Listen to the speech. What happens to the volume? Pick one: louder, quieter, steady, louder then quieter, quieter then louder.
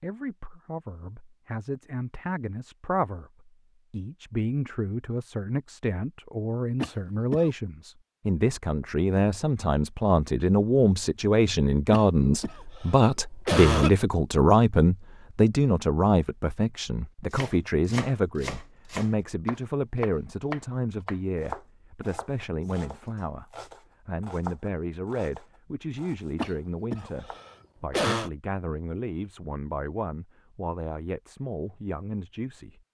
louder then quieter.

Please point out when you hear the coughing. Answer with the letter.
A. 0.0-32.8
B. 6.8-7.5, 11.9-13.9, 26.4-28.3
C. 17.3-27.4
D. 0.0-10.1
B.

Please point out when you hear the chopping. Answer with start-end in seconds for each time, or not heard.
17.3-27.4.